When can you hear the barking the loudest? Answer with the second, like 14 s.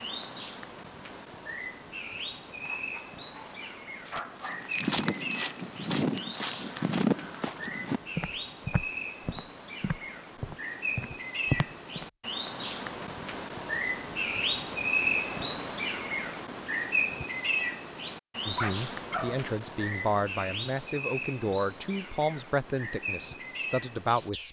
19 s.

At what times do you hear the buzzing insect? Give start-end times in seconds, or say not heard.
not heard.